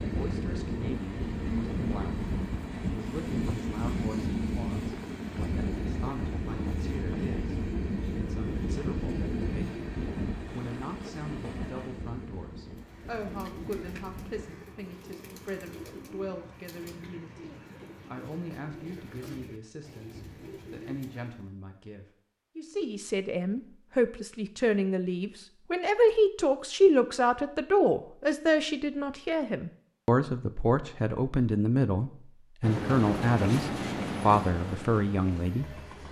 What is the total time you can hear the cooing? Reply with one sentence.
The cooing can be heard for 9 seconds in total.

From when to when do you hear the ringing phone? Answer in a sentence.
You can't hear the ringing phone here.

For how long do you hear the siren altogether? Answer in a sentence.
You can't hear the siren here.